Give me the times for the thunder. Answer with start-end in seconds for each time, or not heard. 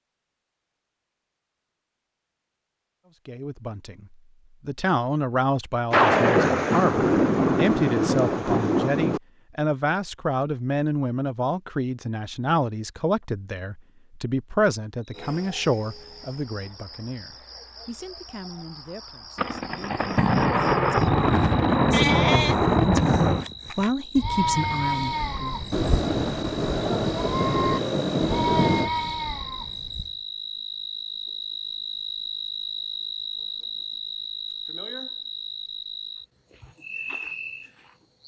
5.9-9.2, 19.4-23.4, 25.7-28.9.